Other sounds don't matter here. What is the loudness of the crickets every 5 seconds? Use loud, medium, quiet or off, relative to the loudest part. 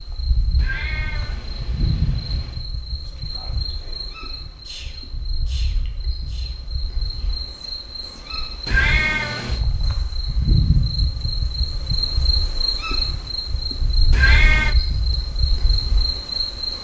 medium, medium, loud, loud.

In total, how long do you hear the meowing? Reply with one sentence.
You can hear the meowing for 4 seconds altogether.